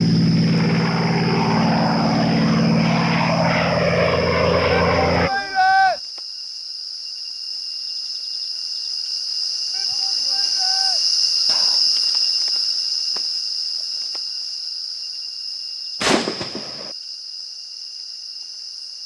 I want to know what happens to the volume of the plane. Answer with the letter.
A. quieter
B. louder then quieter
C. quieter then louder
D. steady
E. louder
D.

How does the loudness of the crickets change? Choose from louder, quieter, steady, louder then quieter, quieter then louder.
louder then quieter.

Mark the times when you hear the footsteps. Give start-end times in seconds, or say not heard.
not heard.